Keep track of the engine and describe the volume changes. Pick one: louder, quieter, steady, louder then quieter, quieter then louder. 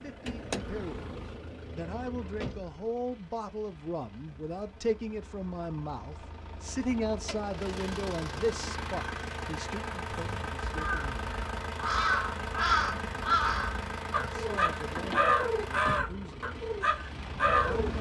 quieter then louder.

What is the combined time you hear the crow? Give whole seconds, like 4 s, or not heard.
8 s.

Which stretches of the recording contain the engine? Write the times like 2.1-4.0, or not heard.
0.0-17.9.